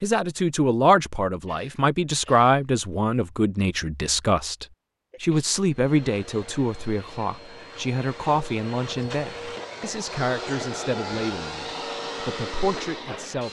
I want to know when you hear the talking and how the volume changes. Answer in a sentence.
You can hear the talking from 0.0 to 13.4 s, getting quieter.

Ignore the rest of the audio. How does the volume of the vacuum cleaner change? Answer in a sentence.
The volume of the vacuum cleaner goes up.